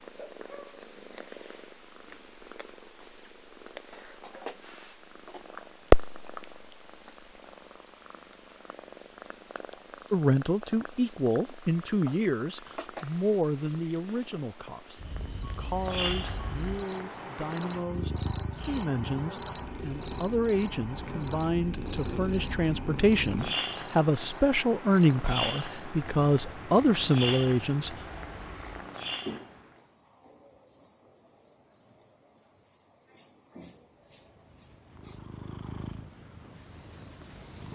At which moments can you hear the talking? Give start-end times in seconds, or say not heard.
10.1-27.9.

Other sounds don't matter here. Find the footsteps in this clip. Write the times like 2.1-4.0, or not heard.
not heard.